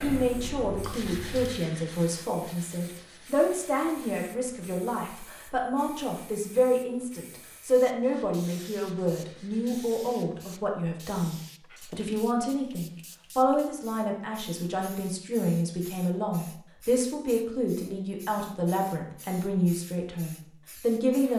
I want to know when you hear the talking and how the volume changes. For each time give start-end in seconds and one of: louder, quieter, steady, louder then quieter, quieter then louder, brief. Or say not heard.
0.0-21.3 steady.